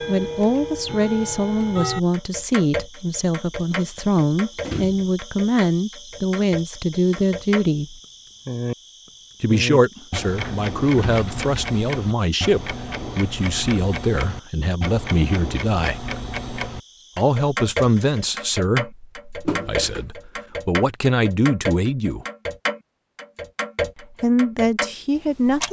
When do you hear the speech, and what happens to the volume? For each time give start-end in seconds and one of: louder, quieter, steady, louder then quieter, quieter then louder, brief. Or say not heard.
0.1-8.0 steady
9.4-16.0 steady
17.1-22.2 quieter then louder
24.0-25.6 brief.